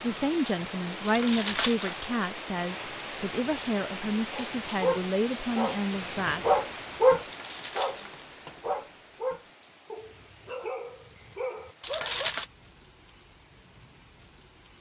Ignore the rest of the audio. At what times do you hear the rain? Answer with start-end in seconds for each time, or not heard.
0.0-14.7.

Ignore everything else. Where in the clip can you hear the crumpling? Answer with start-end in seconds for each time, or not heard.
1.1-2.1, 7.2-8.2, 11.8-12.4.